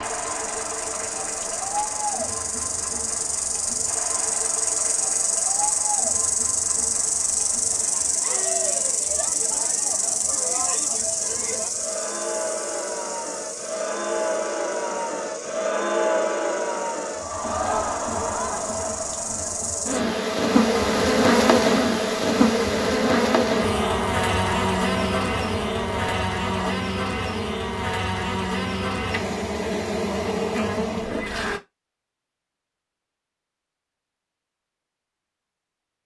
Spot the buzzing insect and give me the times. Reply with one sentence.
You can hear the buzzing insect from 0.0 to 31.6 s.